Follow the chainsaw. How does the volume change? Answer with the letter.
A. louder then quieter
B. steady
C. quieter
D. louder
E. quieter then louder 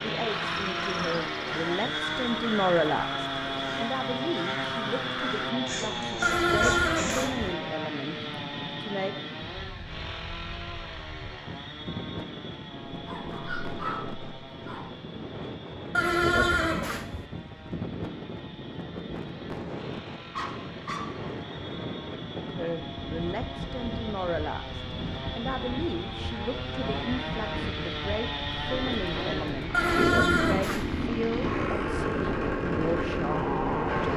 E.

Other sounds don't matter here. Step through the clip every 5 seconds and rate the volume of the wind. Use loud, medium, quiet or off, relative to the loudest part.
medium, medium, medium, loud, loud, loud, loud.